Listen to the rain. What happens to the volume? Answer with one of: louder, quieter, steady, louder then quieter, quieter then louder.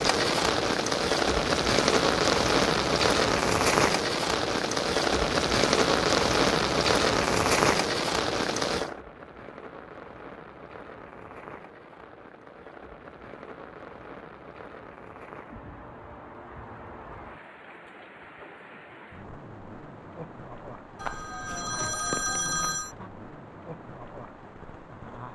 quieter.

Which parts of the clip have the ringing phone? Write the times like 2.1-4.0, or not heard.
20.9-22.9.